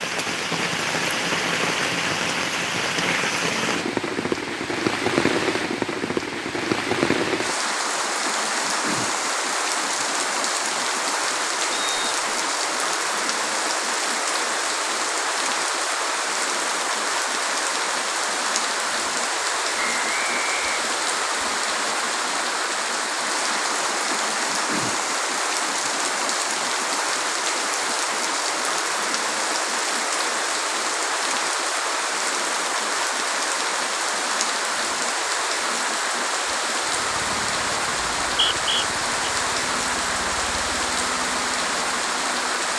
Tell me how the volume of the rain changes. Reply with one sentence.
The loudness of the rain stays about the same.